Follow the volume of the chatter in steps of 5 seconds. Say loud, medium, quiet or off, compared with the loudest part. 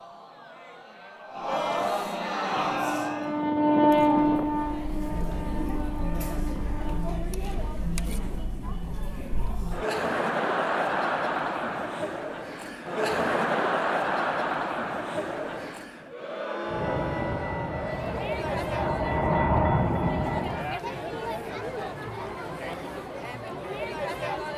medium, medium, loud, medium, medium.